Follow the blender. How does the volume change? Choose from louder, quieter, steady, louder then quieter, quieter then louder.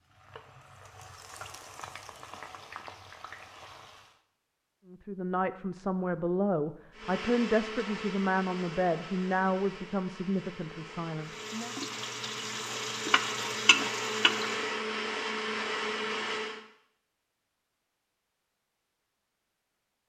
quieter then louder.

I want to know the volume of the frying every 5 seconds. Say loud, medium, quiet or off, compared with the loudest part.
quiet, off, loud, off.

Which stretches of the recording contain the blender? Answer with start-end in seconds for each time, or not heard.
6.9-16.6.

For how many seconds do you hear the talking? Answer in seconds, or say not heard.
7 s.